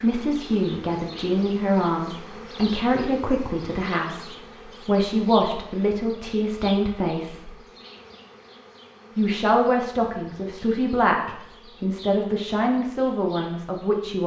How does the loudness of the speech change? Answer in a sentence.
The volume of the speech stays about the same.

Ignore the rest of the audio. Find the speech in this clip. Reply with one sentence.
You can hear the speech from 0.0 to 7.5 s and from 9.2 to 14.2 s.